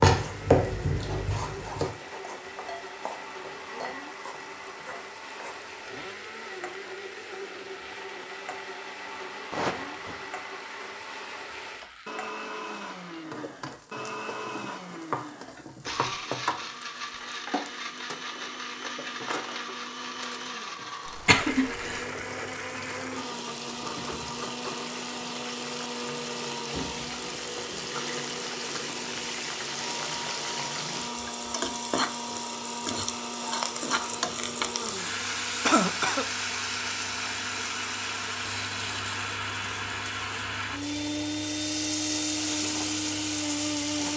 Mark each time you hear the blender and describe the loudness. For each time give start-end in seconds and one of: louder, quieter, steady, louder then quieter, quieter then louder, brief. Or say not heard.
0.1-44.1 louder.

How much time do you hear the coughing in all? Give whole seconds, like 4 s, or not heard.
2 s.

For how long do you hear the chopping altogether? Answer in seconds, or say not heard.
2 s.